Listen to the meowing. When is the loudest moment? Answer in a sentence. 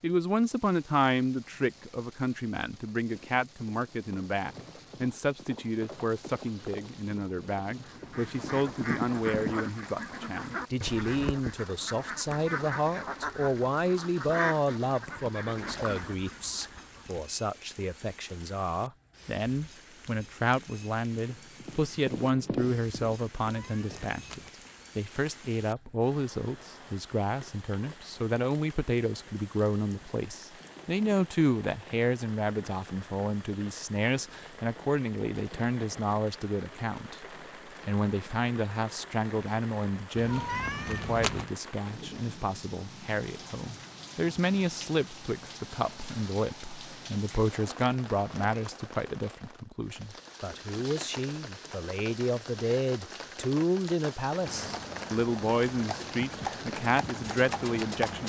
The loudest moment of the meowing is at 41 seconds.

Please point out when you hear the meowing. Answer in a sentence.
The meowing can be heard from 23.4 to 24.5 s and from 40.1 to 41.5 s.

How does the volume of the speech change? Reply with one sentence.
The loudness of the speech stays about the same.